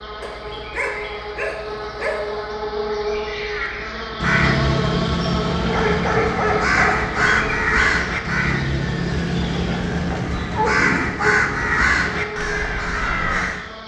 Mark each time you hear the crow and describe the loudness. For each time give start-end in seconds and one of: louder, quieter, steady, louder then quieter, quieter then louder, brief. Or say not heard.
3.5-13.7 steady.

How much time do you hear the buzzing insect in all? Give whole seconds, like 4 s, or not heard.
14 s.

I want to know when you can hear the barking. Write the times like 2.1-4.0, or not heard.
0.2-2.5, 5.7-7.5, 10.1-11.4.